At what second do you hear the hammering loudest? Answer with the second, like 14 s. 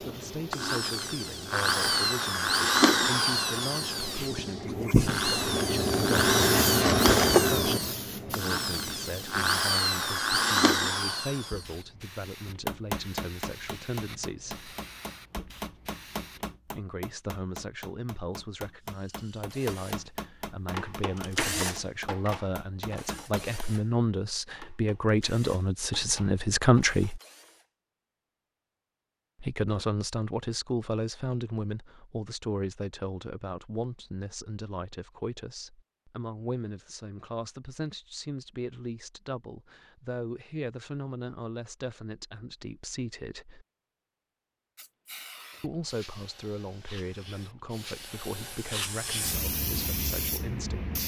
13 s.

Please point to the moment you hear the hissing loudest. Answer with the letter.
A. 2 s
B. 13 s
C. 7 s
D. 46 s
C.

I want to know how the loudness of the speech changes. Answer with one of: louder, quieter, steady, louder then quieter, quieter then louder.
louder then quieter.